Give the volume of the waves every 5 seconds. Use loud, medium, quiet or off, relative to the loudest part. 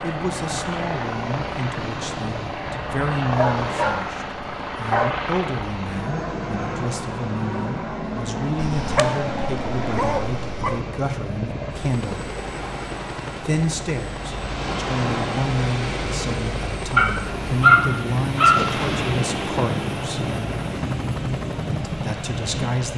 medium, medium, medium, loud, loud.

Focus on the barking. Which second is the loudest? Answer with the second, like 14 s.
18 s.